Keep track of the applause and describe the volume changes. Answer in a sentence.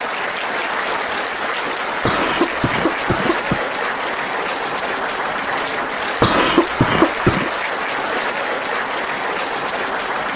The volume of the applause stays about the same.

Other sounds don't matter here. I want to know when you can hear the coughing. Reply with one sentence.
You can hear the coughing from 2.0 to 3.6 s and from 6.2 to 7.5 s.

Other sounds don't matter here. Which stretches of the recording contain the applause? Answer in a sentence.
The applause can be heard from 0.0 to 10.3 s.